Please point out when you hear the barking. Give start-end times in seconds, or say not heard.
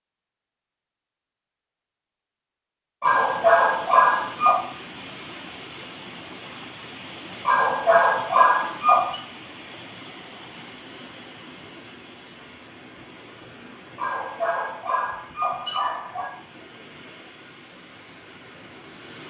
3.0-4.7, 7.5-9.2, 13.9-16.3.